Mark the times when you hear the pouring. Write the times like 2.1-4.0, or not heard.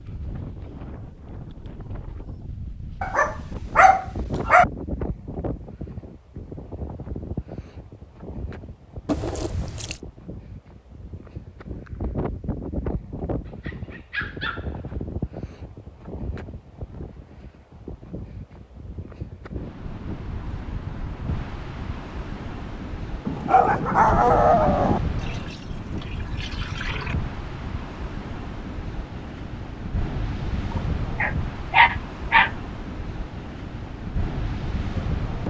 9.1-10.0, 25.1-27.1.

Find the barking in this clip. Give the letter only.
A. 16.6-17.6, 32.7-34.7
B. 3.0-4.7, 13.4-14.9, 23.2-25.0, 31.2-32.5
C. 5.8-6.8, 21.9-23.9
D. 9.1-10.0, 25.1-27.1
B.